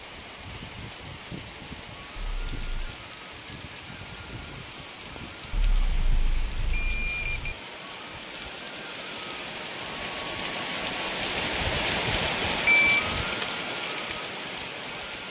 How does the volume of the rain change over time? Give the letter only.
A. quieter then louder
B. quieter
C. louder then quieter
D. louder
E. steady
D.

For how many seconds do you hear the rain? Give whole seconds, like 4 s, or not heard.
15 s.